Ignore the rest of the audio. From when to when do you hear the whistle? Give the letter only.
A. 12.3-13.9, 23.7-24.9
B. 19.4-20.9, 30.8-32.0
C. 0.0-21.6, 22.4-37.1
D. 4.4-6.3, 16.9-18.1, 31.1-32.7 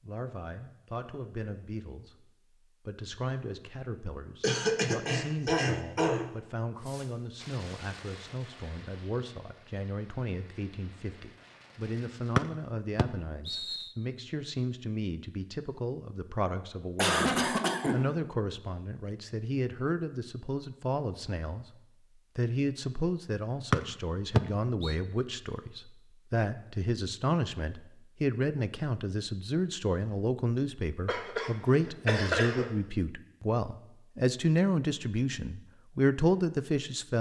A.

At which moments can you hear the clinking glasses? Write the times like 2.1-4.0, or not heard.
not heard.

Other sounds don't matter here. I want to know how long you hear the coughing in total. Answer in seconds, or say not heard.
5 s.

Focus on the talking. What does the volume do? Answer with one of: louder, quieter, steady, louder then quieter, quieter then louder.
louder.